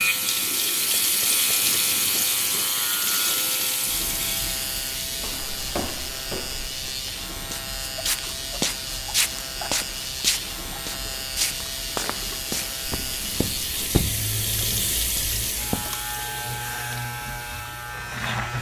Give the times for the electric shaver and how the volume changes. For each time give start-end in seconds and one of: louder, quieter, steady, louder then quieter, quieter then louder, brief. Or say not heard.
0.0-18.5 steady.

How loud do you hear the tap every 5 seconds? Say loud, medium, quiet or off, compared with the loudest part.
loud, quiet, medium, medium.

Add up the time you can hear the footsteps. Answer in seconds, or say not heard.
11 s.